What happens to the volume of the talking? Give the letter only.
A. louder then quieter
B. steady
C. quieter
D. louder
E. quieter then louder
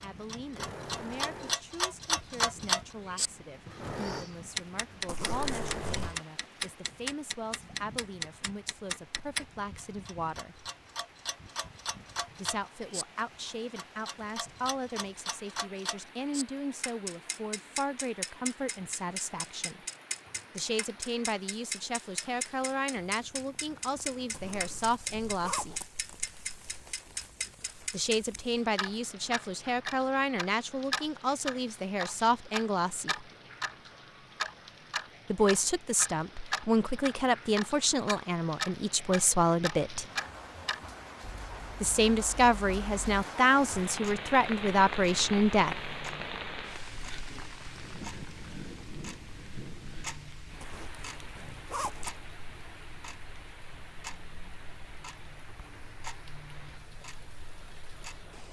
D.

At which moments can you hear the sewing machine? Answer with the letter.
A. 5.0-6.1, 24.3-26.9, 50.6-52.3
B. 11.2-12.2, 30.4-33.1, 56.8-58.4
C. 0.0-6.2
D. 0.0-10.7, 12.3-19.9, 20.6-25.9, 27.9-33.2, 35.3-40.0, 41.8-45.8
C.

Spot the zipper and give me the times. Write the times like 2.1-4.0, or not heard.
5.0-6.1, 24.3-26.9, 50.6-52.3.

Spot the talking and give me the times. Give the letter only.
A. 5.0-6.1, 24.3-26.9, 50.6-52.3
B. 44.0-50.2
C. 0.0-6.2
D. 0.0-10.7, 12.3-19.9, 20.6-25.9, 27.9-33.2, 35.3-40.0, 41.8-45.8
D.